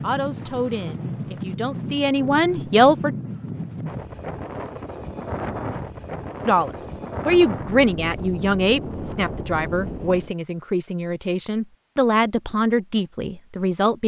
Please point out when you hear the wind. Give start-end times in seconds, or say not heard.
0.0-10.3.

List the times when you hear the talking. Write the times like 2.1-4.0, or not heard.
0.0-3.1, 6.5-14.0.